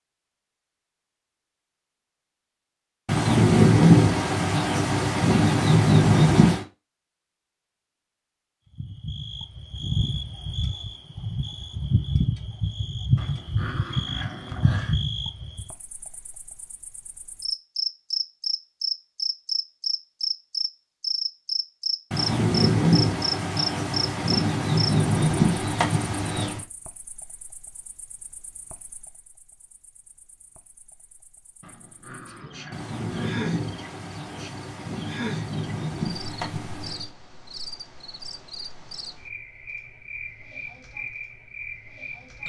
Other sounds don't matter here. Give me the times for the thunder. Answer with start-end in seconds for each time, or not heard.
3.0-6.7, 22.1-26.6, 32.7-37.1.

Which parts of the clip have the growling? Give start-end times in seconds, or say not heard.
13.2-15.1, 31.6-33.2.